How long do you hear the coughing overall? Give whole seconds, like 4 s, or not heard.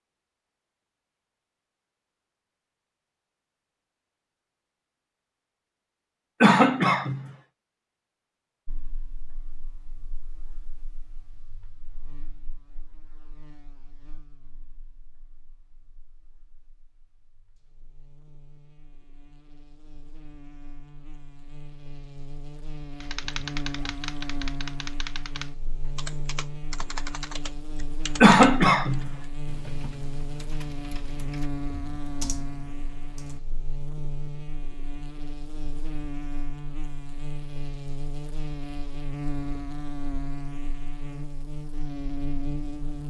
2 s.